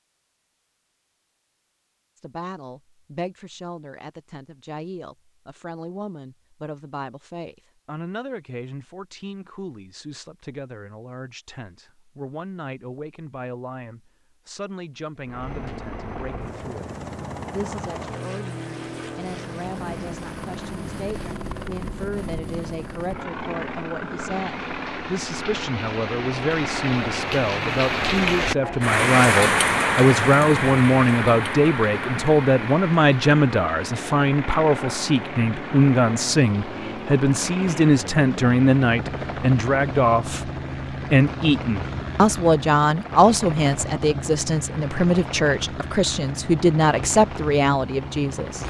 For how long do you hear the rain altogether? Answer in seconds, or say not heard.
24 s.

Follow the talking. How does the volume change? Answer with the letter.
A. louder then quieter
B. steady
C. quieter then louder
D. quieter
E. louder
E.